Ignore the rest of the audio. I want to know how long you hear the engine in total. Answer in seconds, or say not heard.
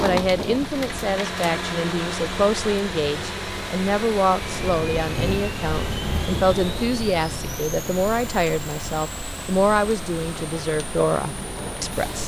12 s.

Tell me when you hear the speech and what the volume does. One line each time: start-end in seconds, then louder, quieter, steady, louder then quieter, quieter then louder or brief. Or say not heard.
0.0-12.2 steady.